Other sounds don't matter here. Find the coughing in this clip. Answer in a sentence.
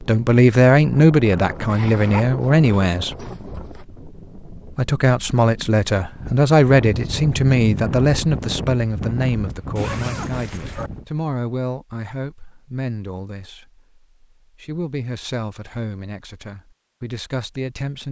The coughing can't be heard in this clip.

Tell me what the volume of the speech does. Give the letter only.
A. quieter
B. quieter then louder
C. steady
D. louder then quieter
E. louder
A.